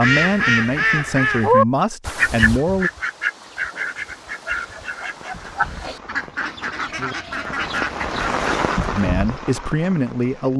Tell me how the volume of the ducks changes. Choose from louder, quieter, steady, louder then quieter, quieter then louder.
quieter.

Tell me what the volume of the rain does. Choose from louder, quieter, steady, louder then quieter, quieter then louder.
louder then quieter.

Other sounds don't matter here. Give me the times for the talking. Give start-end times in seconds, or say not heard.
0.0-2.9, 8.9-10.5.